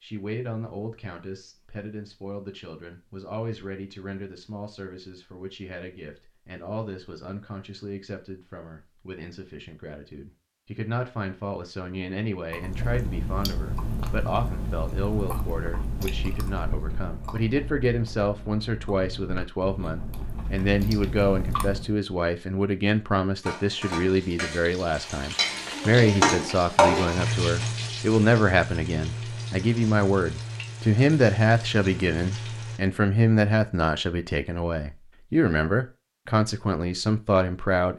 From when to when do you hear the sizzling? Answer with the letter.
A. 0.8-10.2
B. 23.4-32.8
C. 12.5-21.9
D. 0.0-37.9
B.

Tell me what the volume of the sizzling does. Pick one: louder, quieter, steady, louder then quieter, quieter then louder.
louder then quieter.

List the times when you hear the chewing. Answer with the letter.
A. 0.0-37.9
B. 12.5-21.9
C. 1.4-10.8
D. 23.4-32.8
B.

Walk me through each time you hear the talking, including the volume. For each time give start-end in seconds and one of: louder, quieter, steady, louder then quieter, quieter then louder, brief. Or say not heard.
0.0-37.9 louder.